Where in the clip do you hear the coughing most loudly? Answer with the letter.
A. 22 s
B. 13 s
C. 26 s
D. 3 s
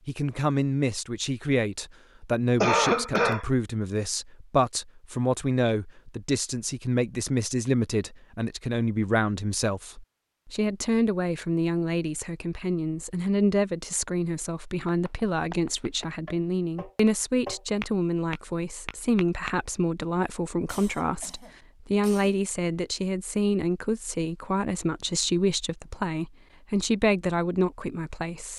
D.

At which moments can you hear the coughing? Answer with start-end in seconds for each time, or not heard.
2.6-3.5, 20.6-22.4.